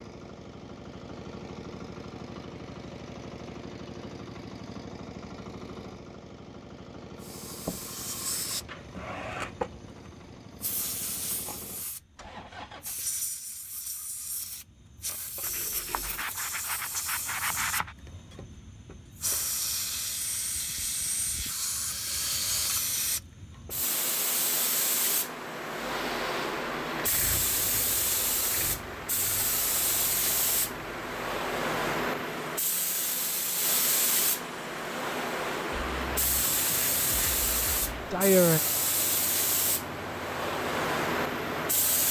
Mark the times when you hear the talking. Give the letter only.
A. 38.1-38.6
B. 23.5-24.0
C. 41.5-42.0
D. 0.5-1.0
A.